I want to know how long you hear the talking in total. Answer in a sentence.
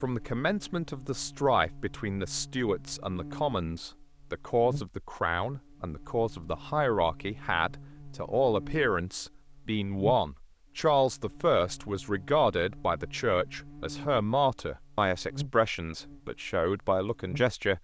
The talking can be heard for 18 seconds in total.